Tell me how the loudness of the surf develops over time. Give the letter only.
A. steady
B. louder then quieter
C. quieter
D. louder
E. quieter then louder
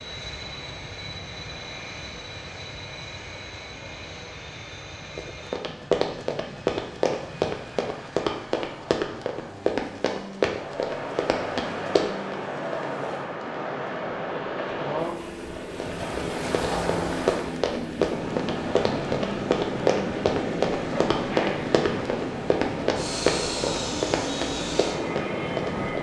A.